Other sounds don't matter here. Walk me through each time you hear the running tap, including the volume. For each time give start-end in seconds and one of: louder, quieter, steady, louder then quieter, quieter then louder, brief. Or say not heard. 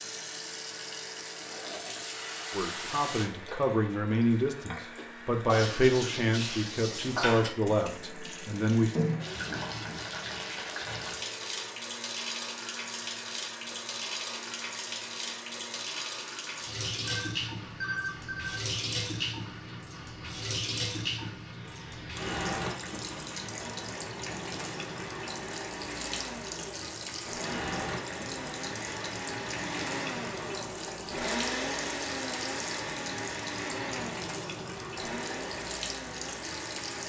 0.0-37.0 steady.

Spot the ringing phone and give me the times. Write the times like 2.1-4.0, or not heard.
17.1-18.6.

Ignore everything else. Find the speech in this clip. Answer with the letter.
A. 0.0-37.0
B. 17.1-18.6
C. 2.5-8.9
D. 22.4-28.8
C.